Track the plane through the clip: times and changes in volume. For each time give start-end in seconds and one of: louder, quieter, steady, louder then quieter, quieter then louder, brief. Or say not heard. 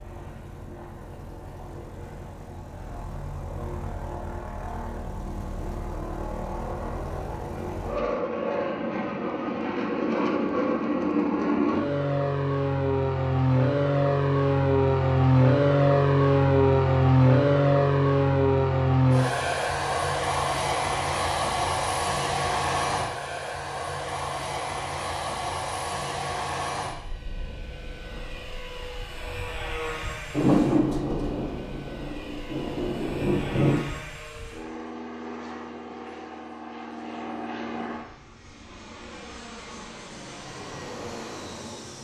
0.0-41.9 louder then quieter.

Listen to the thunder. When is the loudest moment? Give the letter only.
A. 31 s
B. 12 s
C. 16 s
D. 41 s
A.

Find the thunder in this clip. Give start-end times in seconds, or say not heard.
30.3-33.9.